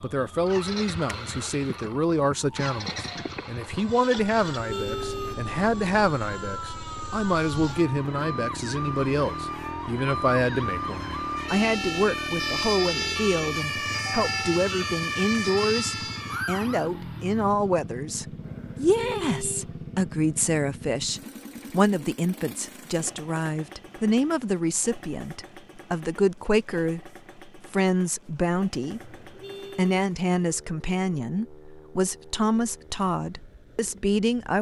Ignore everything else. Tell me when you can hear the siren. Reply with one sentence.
The siren can be heard from 0.0 to 16.9 s.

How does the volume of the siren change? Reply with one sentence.
The loudness of the siren goes up.